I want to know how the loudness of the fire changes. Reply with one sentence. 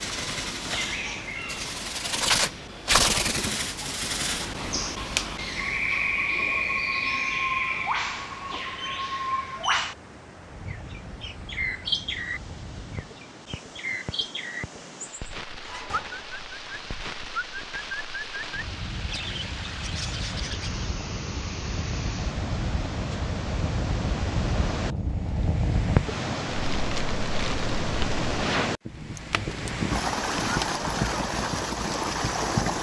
The loudness of the fire goes up.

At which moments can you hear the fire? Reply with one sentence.
You can hear the fire from 10.4 to 32.7 s.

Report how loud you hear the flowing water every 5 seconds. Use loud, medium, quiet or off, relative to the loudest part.
quiet, quiet, quiet, quiet, medium, loud, loud.